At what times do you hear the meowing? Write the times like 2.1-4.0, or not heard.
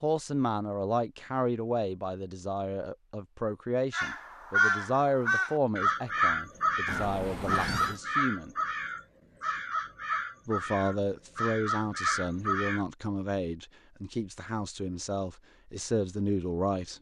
6.8-8.0.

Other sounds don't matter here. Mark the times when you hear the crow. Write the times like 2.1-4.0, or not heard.
3.9-12.8.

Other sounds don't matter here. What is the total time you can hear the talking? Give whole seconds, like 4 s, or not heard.
15 s.